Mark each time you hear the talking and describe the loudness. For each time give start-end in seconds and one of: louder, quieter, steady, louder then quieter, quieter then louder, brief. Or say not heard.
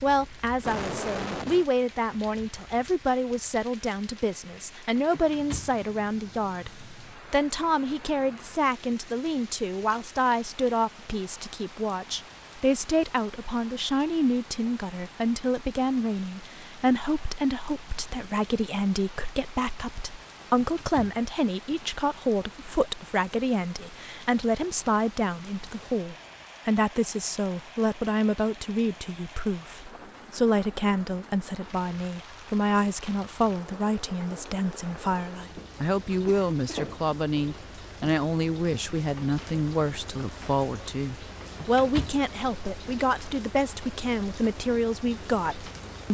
0.0-46.0 steady.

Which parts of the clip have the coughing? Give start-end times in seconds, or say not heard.
0.2-1.6, 36.2-37.0.